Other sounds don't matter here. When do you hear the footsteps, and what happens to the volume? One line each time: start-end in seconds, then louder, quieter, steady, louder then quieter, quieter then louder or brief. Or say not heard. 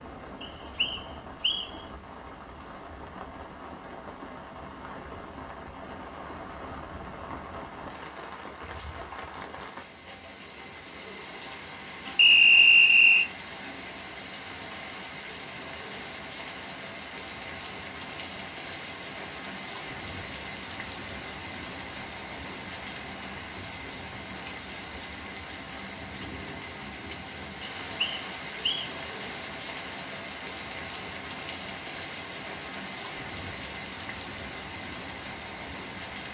not heard.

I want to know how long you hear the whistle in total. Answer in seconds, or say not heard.
4 s.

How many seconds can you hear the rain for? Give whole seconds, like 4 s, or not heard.
36 s.